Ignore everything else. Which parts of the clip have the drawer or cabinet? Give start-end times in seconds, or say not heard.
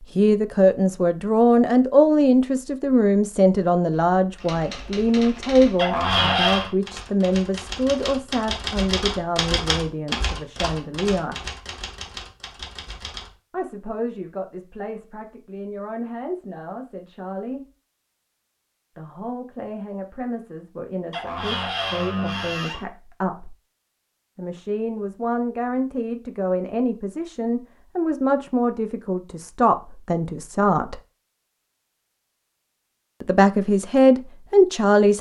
5.8-6.7, 21.1-22.9.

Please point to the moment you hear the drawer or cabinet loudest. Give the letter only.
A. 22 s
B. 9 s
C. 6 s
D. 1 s
C.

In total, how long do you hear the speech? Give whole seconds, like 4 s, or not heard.
29 s.